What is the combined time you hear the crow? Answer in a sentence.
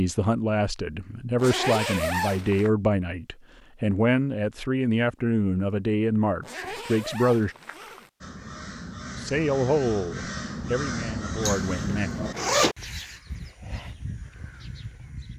You can hear the crow for 7 seconds altogether.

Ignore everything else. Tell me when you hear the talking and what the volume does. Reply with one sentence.
The talking can be heard from 0.0 to 7.5 s, at a steady volume; and briefly from 9.2 to 12.1 s.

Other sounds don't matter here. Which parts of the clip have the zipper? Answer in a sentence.
You can hear the zipper from 1.4 to 2.7 s, from 6.4 to 8.1 s and from 11.4 to 12.8 s.